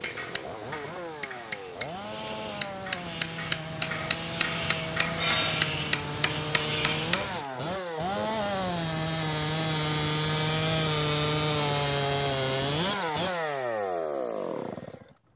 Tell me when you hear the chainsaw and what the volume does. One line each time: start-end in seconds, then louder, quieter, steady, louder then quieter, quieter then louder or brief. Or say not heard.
0.0-15.2 louder.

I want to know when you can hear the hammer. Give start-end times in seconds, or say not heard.
0.0-7.5.